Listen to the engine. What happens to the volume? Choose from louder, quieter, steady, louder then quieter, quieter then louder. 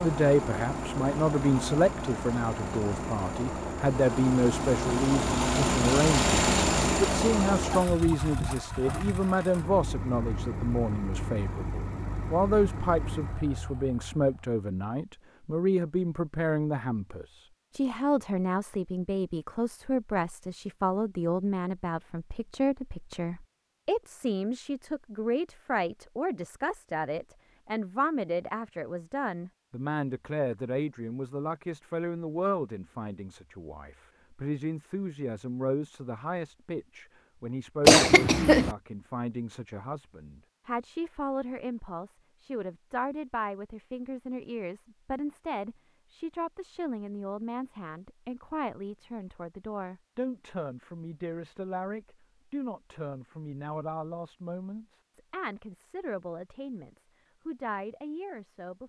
louder then quieter.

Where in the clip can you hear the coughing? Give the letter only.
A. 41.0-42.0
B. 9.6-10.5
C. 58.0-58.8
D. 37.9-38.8
D.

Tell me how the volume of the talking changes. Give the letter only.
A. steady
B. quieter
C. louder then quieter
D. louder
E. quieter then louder
B.